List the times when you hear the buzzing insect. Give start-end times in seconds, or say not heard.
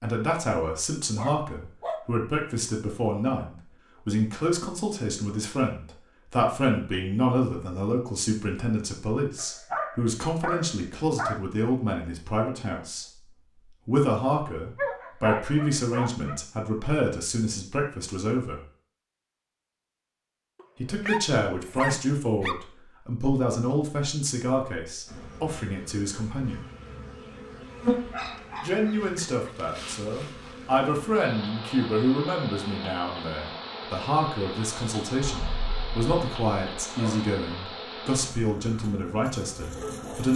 25.1-40.3.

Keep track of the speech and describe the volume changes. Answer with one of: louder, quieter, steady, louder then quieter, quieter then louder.
steady.